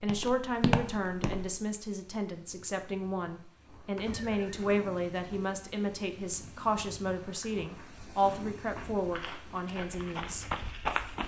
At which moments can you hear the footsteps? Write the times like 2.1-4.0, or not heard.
0.0-1.6, 7.2-11.2.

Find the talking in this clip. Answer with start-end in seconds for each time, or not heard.
0.0-10.4.